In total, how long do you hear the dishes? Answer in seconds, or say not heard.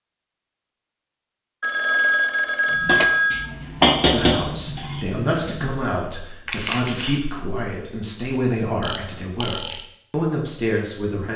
3 s.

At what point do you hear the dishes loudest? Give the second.
4 s.